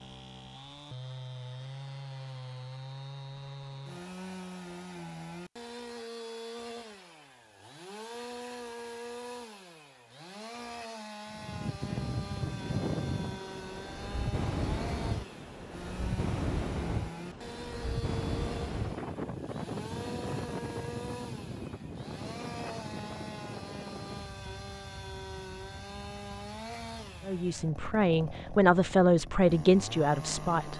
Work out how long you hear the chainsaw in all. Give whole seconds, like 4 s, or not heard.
31 s.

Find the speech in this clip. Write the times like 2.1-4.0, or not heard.
27.2-30.7.